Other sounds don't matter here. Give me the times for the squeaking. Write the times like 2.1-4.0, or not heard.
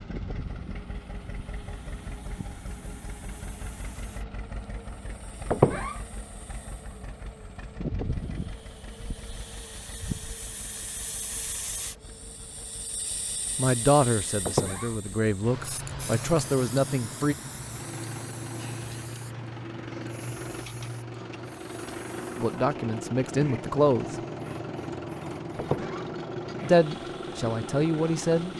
5.5-6.0, 14.4-14.9, 25.6-26.1.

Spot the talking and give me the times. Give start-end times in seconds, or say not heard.
13.6-17.4, 22.4-24.1, 26.7-28.5.